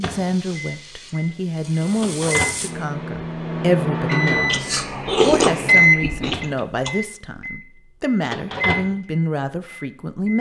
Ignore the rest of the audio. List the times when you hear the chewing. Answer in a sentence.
You can hear the chewing from 4.3 to 6.9 s.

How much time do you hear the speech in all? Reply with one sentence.
You can hear the speech for 10 seconds altogether.